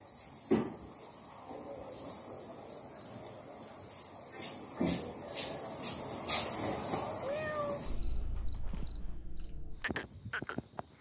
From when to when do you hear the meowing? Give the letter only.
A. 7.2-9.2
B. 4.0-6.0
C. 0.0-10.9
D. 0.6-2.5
A.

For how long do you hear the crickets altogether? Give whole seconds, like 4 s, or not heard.
11 s.